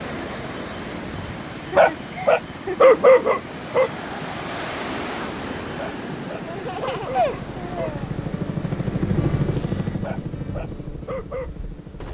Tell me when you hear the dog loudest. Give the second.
3 s.